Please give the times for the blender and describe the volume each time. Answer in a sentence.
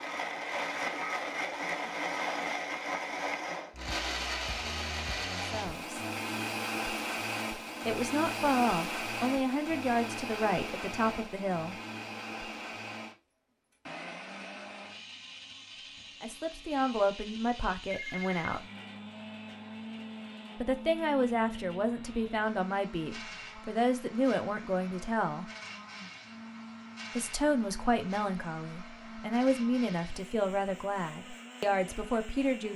The blender can be heard from 0.0 to 32.7 s, getting quieter.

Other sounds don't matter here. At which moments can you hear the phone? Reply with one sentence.
You can hear the phone from 17.9 to 18.6 s.